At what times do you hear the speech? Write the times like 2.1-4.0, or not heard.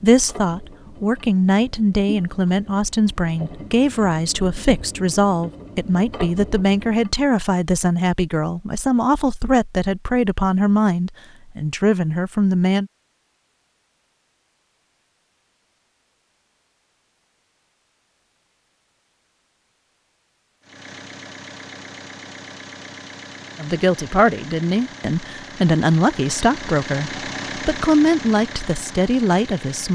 0.0-12.9, 23.6-29.8.